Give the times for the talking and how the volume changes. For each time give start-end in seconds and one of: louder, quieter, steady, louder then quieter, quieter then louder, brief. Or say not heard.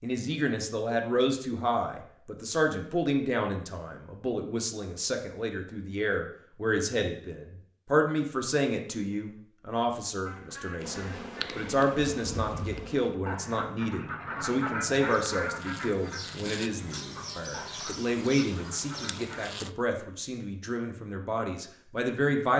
0.0-22.5 steady.